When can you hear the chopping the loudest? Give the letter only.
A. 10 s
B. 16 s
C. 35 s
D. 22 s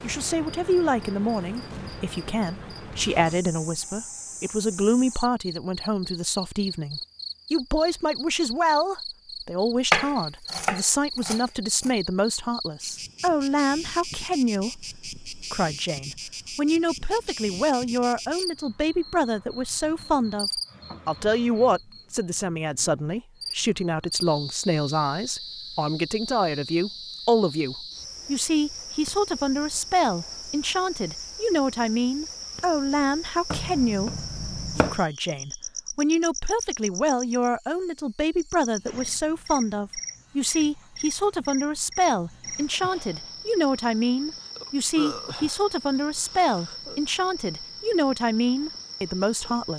A.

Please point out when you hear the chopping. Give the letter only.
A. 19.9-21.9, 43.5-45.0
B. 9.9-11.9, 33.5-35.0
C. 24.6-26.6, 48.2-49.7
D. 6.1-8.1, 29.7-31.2
B.